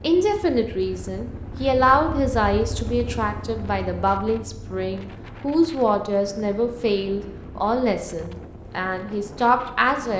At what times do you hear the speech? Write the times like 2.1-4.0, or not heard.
0.0-10.1.